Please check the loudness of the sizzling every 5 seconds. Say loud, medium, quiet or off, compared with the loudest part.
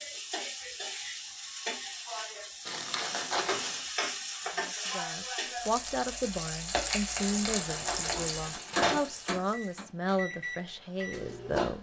loud, loud, off.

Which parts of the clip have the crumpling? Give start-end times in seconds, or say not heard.
2.6-3.9, 7.2-8.8.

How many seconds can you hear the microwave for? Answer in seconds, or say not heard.
4 s.